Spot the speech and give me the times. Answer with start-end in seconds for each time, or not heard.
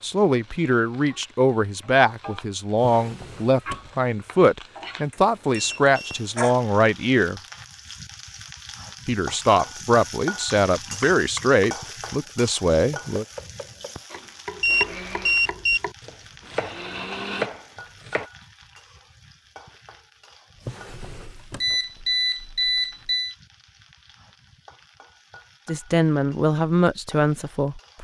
0.0-7.4, 9.1-13.2, 25.6-27.9.